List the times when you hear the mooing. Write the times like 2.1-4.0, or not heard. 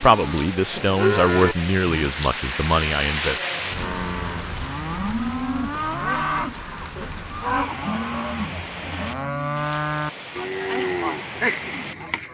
0.0-2.1, 3.5-12.2.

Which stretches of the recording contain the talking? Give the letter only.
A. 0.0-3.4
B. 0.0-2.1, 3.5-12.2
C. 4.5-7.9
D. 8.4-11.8
A.